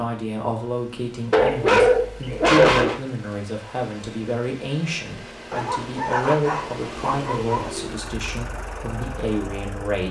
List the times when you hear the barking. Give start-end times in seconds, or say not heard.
1.3-3.0, 5.5-7.7.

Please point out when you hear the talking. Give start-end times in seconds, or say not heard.
0.0-10.0.